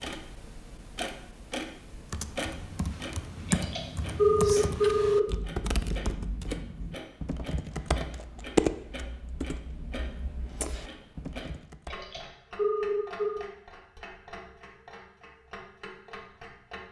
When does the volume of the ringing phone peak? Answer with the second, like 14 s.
4 s.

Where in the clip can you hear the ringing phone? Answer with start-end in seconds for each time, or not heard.
3.5-5.2, 11.9-13.4.